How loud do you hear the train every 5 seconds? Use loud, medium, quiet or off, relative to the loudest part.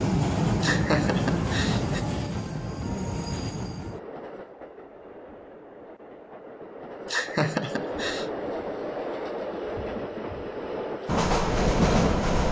loud, medium, loud.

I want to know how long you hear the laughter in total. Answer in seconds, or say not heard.
3 s.